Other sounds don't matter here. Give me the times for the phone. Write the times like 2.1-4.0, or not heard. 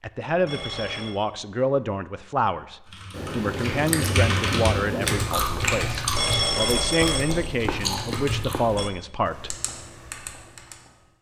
0.5-1.1, 6.1-8.9.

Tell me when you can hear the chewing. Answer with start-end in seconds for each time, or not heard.
3.1-8.9.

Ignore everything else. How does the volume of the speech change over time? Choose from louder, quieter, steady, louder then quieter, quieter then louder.
steady.